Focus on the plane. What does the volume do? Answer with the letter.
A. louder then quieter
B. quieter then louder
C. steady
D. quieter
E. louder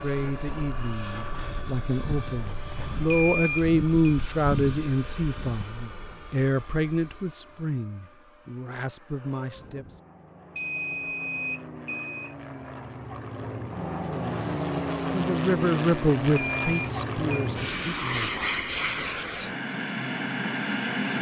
B.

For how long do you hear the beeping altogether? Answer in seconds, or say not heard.
4 s.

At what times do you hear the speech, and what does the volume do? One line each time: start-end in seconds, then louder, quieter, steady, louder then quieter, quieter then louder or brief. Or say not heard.
0.0-10.0 louder then quieter
14.0-19.1 louder then quieter.